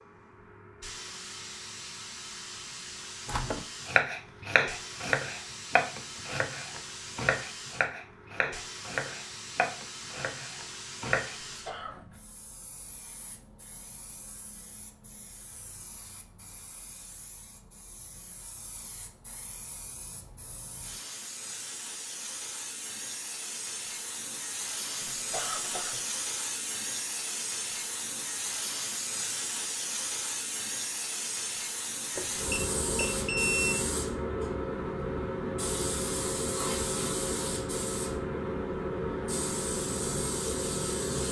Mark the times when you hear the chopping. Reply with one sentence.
The chopping can be heard from 3.2 to 12.2 s.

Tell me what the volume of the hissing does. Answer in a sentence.
The loudness of the hissing goes up.